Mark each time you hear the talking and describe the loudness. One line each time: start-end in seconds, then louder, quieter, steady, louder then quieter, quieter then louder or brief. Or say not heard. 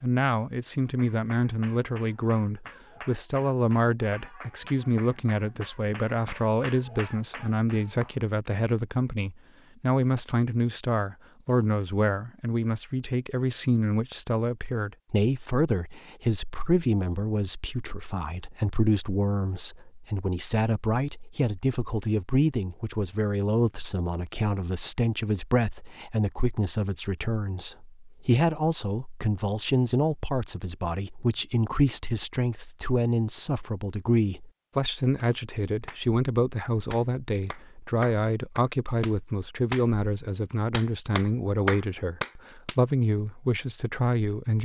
0.0-44.5 steady.